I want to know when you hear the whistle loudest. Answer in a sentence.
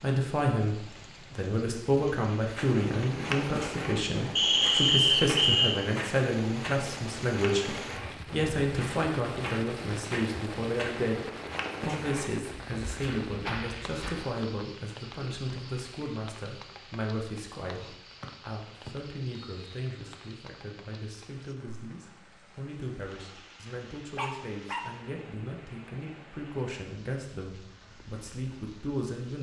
The loudest moment of the whistle is at 5 seconds.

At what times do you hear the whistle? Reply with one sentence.
You can hear the whistle from 4.3 to 5.8 s and from 18.2 to 20.3 s.